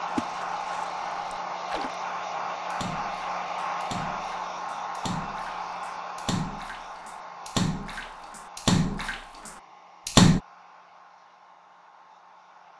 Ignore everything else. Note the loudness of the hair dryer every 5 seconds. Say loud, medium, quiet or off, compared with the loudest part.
loud, medium, quiet.